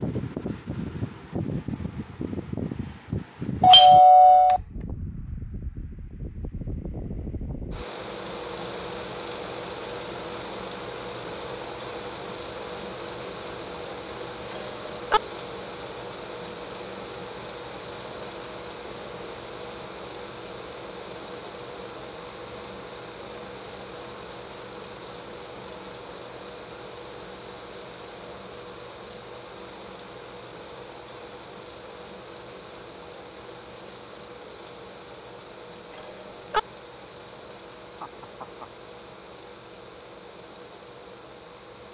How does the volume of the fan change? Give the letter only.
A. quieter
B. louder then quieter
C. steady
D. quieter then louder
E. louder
A.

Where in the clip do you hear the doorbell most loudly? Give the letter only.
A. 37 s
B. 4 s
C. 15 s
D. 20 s
B.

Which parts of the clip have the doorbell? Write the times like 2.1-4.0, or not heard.
3.6-4.6, 14.5-15.2, 35.9-36.6.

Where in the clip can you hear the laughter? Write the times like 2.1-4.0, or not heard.
37.8-38.7.